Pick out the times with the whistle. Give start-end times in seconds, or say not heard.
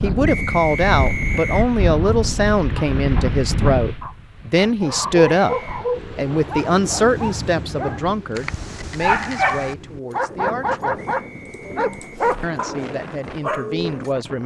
0.2-1.7, 5.3-5.8, 10.9-12.2.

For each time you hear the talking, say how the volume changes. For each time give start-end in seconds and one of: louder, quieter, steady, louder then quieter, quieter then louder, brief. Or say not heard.
0.0-5.5 steady
6.2-11.1 quieter
12.4-14.4 brief.